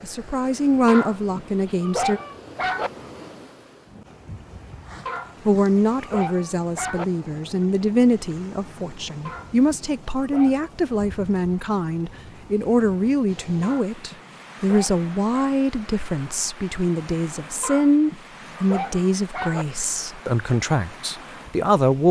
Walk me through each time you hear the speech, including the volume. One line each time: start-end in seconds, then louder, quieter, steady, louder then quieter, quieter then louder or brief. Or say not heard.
0.0-2.2 brief
5.5-22.0 steady.